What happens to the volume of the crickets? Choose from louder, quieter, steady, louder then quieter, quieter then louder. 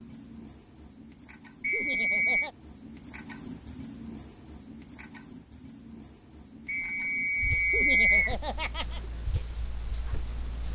louder then quieter.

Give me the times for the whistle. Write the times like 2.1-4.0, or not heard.
1.6-2.5, 6.7-8.3.